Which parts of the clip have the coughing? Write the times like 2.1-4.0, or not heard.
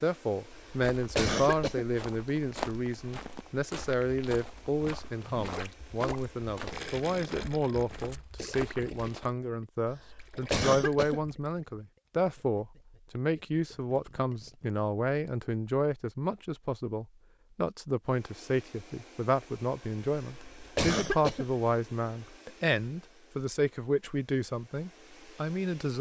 0.5-1.9, 9.8-11.3, 20.1-21.6.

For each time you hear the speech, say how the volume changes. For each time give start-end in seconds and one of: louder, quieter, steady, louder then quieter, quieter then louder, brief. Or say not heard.
0.0-25.9 steady.